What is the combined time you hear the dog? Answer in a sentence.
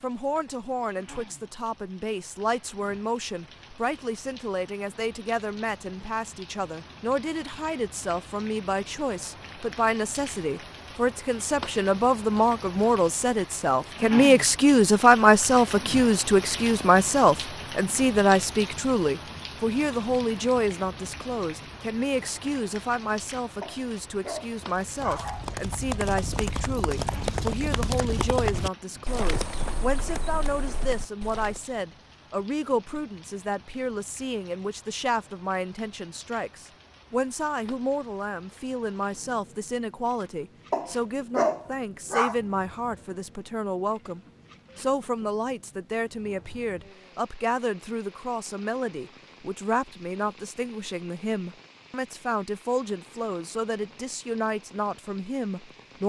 The dog can be heard for 4 seconds in total.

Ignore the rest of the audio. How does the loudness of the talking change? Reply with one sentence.
The loudness of the talking goes up, then down.